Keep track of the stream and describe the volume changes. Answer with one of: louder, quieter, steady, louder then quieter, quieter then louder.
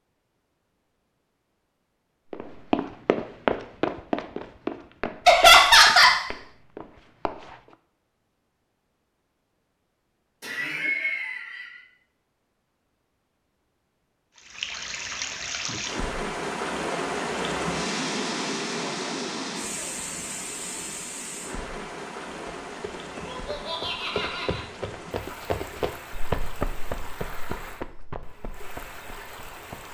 quieter.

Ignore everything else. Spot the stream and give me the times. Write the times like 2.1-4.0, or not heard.
14.3-29.8.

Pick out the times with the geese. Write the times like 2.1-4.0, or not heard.
not heard.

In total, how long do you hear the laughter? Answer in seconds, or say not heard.
4 s.